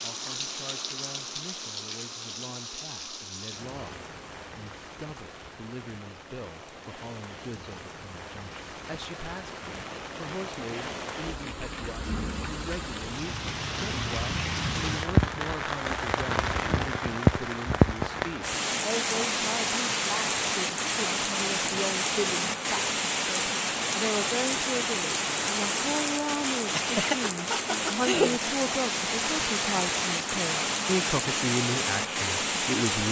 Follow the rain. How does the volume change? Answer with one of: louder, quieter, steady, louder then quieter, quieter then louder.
louder.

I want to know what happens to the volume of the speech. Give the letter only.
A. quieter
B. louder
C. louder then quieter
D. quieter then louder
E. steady
B.